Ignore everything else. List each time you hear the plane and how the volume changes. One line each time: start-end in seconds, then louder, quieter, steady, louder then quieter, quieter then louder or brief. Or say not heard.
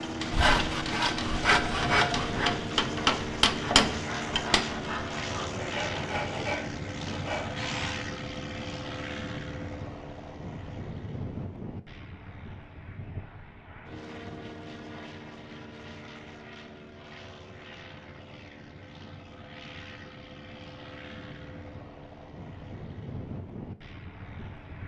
0.0-24.8 quieter.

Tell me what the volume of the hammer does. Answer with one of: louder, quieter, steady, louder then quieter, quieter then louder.
louder.